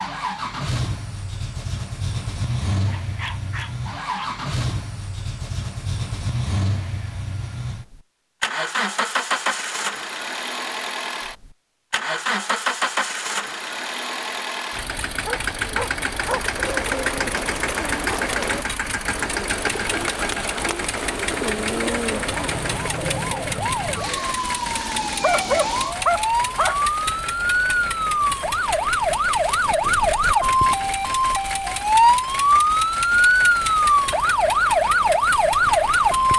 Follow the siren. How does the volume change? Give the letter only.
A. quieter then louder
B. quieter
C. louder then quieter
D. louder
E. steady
D.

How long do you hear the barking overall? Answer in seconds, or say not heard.
4 s.